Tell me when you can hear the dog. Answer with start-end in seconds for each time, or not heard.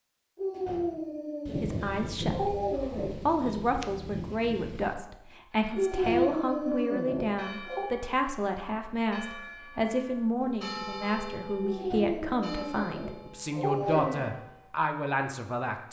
0.3-3.1, 5.8-7.9, 11.6-14.3.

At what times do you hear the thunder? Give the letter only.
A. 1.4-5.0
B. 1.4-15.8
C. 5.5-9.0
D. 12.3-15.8
A.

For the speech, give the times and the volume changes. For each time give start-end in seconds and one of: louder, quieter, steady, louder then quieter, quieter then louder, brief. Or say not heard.
1.4-15.8 steady.